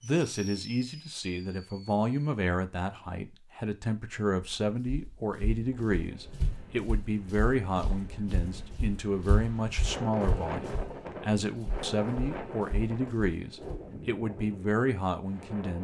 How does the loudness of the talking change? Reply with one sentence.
The loudness of the talking stays about the same.